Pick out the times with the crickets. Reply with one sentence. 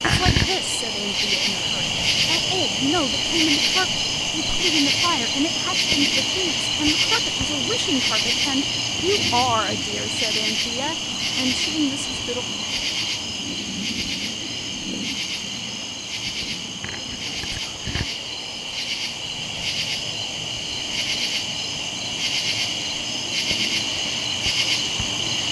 The crickets can be heard from 0.0 to 25.4 s.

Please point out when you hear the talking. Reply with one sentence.
You can hear the talking from 0.1 to 12.4 s.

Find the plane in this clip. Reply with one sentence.
The plane can't be heard in this clip.